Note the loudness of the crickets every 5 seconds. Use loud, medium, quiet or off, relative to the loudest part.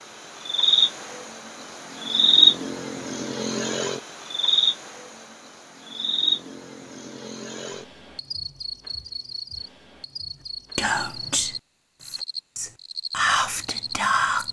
loud, medium, quiet.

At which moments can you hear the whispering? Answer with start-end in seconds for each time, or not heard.
10.8-14.4.